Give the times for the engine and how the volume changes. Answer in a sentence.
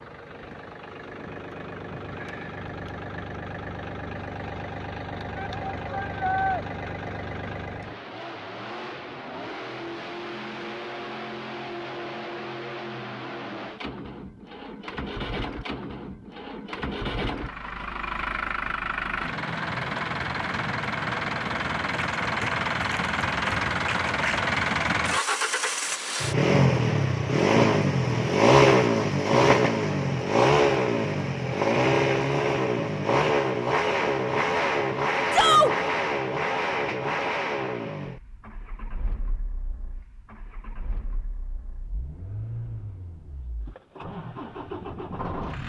The engine can be heard from 0.0 to 45.6 s, getting louder then quieter.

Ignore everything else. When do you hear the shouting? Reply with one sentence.
You can hear the shouting from 5.3 to 6.7 s and from 35.3 to 35.7 s.